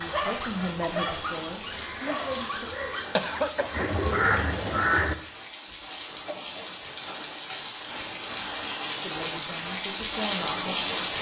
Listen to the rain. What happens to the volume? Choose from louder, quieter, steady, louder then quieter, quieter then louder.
louder.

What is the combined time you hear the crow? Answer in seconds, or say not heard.
5 s.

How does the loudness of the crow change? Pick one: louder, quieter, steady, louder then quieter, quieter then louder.
louder.